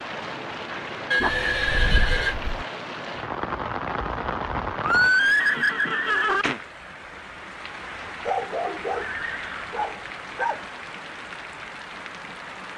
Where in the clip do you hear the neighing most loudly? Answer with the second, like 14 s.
5 s.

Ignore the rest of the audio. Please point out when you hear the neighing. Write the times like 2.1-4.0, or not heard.
1.1-2.4, 4.8-6.5, 8.9-9.8.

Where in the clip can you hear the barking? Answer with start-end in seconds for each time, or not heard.
1.2-2.6, 8.1-10.6.